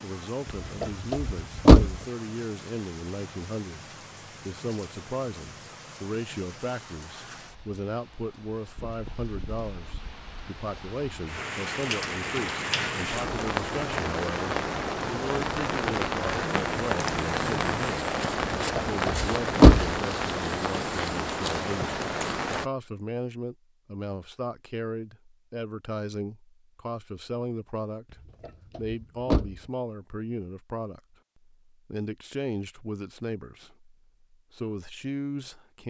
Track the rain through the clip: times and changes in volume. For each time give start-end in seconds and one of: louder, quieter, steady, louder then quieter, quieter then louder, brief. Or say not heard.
0.0-22.6 louder.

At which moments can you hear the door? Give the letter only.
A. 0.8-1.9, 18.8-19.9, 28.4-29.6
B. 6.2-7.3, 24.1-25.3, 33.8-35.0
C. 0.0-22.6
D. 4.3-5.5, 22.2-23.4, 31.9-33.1
A.